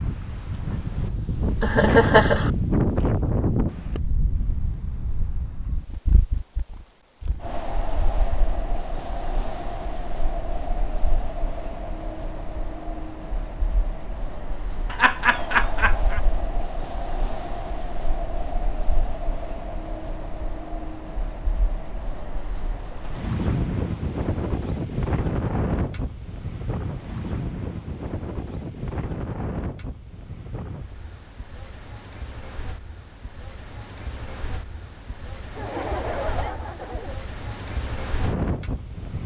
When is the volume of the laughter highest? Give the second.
2 s.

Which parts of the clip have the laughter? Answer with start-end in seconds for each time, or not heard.
1.6-2.5, 14.9-16.2, 35.5-37.2.